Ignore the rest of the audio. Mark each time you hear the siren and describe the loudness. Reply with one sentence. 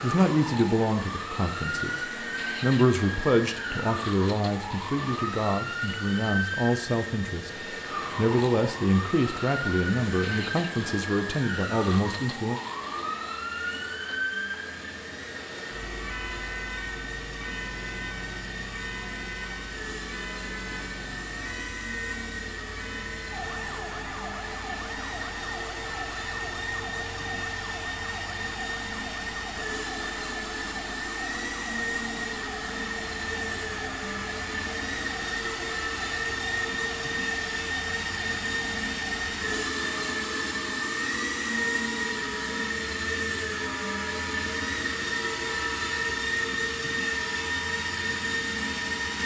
The siren can be heard from 0.0 to 49.2 s, getting quieter.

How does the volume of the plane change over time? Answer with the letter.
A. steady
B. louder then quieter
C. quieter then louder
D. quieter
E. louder
E.